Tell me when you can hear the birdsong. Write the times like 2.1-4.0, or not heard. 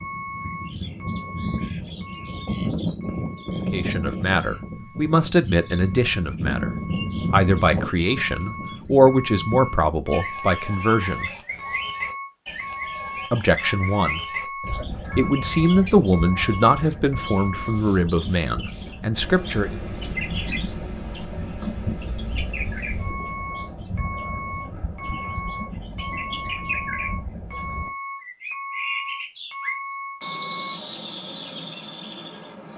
0.0-32.7.